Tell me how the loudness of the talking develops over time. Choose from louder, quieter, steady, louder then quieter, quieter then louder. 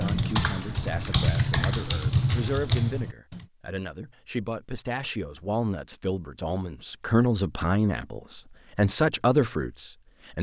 louder.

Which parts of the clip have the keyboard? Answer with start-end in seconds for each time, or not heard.
0.0-3.5.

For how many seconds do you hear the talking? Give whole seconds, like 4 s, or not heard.
10 s.